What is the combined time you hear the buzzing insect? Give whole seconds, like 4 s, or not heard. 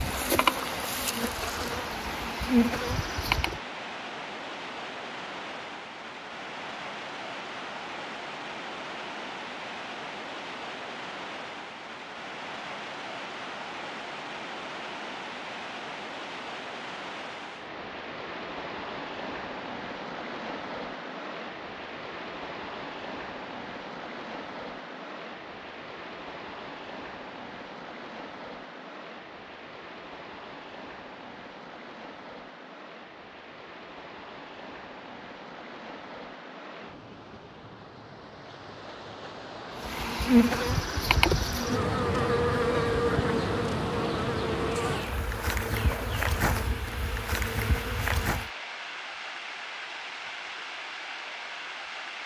12 s.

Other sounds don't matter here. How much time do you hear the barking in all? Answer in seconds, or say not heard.
not heard.